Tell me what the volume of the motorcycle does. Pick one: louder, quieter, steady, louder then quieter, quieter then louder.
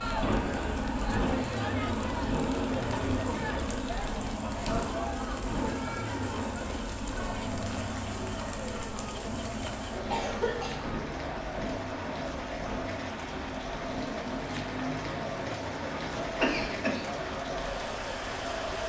quieter.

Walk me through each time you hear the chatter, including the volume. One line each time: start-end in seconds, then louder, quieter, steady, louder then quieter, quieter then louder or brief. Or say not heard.
0.0-18.8 steady.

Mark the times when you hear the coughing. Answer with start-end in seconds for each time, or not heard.
2.9-3.8, 9.9-10.8, 16.1-17.0.